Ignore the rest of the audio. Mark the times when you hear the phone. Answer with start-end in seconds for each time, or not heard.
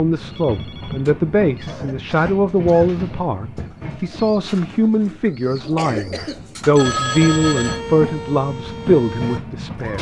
0.3-1.8, 6.7-7.8.